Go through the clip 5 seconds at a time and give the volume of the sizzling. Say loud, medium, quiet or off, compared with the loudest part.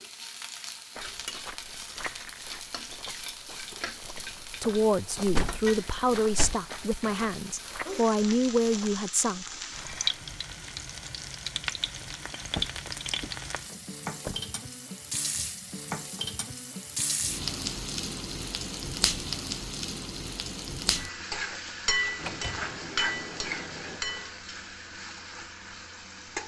medium, medium, loud, loud, loud, medium.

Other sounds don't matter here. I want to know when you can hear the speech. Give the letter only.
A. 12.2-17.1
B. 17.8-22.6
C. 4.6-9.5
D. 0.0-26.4
C.